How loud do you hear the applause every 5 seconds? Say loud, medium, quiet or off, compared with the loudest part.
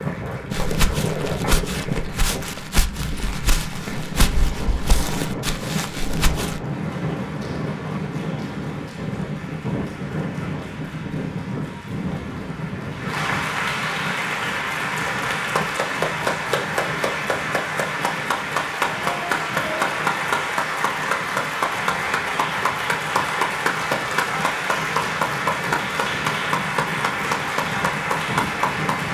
quiet, quiet, medium, loud, loud, loud.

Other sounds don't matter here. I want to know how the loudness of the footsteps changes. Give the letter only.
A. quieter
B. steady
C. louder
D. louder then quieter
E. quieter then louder
B.